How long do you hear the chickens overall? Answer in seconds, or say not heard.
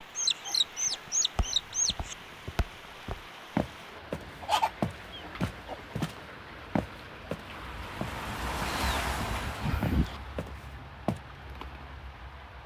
5 s.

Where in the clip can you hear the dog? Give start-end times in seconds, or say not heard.
not heard.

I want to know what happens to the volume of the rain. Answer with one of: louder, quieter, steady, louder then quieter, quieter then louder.
louder then quieter.